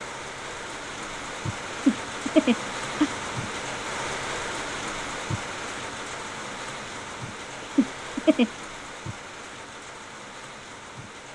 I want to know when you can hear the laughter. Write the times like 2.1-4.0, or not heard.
1.7-3.1, 7.6-8.5.